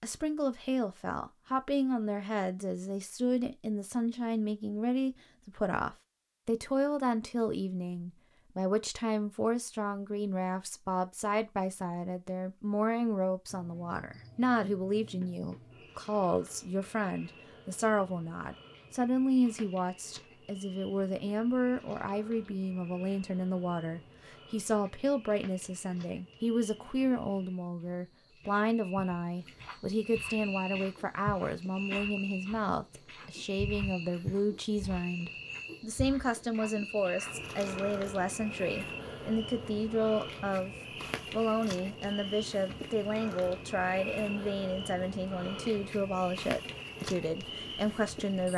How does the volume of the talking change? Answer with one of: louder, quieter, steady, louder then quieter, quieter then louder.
steady.